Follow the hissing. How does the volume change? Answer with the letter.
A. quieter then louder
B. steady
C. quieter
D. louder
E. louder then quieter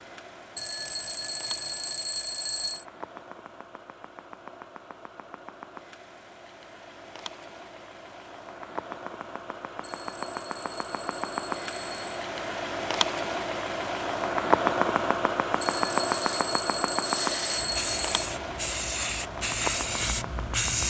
D.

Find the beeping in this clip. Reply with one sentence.
You can hear the beeping from 0.6 to 2.9 s, from 9.8 to 12.2 s and from 15.6 to 18.3 s.